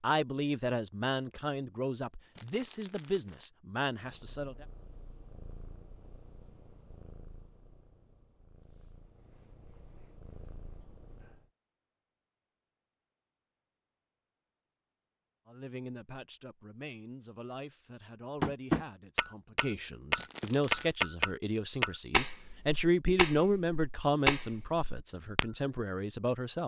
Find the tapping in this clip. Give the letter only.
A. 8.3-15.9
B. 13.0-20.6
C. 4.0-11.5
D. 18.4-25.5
D.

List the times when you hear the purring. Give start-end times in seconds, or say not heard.
4.0-11.5.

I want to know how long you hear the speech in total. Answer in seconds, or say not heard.
16 s.